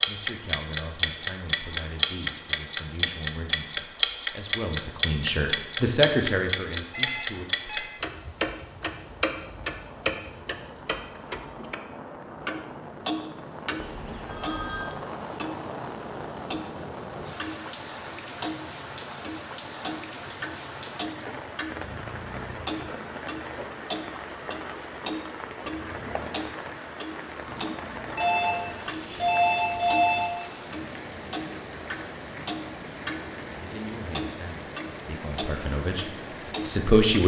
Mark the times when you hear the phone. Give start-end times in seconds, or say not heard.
6.9-7.9, 13.8-14.9, 28.1-30.3.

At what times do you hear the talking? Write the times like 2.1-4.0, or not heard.
0.1-7.5, 33.5-37.2.